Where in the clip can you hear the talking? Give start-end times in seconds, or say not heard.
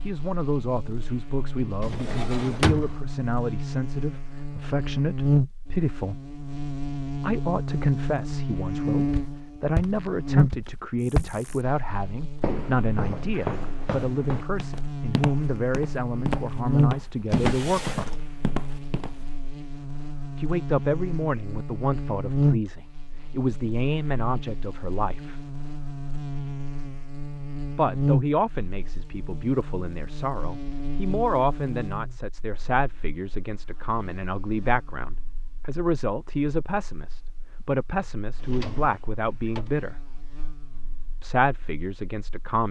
0.0-6.2, 7.2-18.1, 20.4-25.4, 27.7-40.0, 41.2-42.6.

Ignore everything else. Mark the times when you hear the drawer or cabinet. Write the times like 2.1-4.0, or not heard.
1.8-3.0, 17.3-18.4, 38.4-39.7.